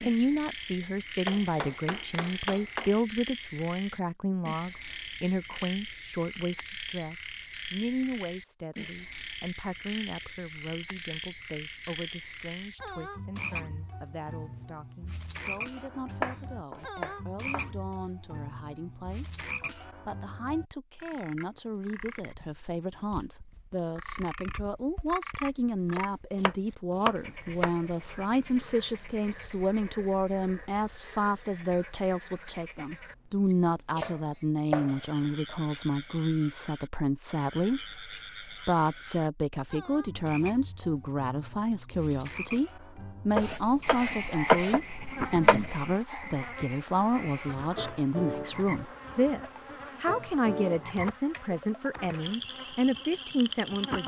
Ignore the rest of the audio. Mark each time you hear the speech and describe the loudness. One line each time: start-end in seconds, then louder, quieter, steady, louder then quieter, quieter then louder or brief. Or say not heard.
0.0-54.0 quieter then louder.